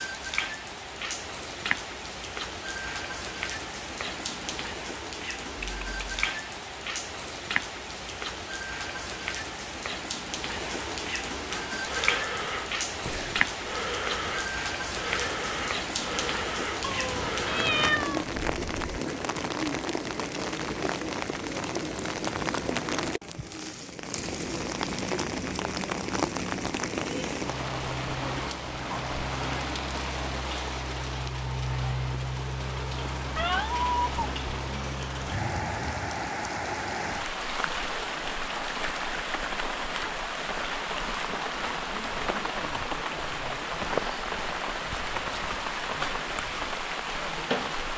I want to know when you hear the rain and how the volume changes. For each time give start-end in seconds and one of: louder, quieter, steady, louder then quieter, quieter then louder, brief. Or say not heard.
0.0-47.9 steady.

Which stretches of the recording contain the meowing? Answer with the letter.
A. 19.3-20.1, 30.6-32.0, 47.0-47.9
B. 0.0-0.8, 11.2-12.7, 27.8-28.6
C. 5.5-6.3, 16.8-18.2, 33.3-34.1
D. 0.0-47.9
C.